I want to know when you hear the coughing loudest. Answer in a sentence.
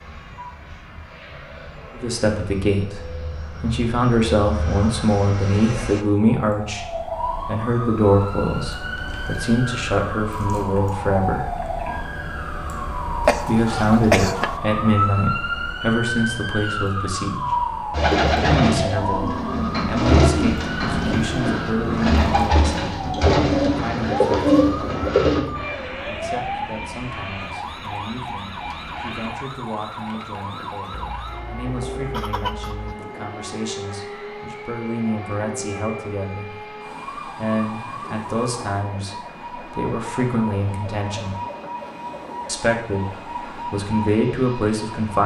The loudest moment of the coughing is at 14 seconds.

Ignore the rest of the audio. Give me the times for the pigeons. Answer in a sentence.
You can hear the pigeons from 17.9 to 25.4 s.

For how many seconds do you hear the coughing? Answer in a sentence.
You can hear the coughing for 3 seconds altogether.